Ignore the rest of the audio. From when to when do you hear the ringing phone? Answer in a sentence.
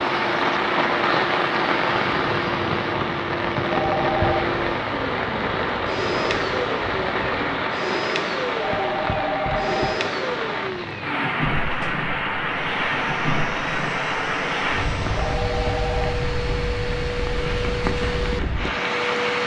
You can hear the ringing phone from 3.7 to 4.5 s, from 8.6 to 10.0 s and from 15.2 to 16.2 s.